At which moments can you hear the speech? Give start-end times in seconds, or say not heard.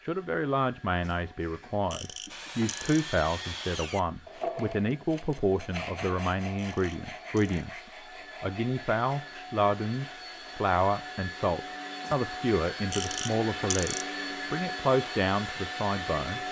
0.0-16.4.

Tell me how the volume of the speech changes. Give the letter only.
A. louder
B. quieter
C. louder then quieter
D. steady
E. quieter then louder
D.